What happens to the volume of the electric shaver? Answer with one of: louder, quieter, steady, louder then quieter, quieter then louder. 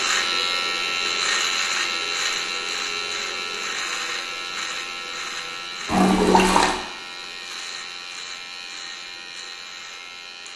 quieter.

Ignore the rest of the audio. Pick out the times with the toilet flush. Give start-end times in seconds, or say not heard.
5.8-6.8.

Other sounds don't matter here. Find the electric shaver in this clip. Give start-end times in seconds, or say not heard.
0.0-10.5.